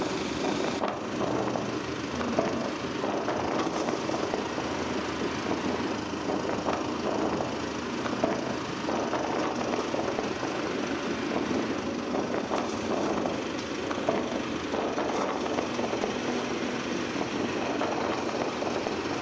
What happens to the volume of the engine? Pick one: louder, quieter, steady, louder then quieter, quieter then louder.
steady.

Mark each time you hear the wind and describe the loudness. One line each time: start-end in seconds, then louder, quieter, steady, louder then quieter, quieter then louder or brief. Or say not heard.
0.0-19.1 steady.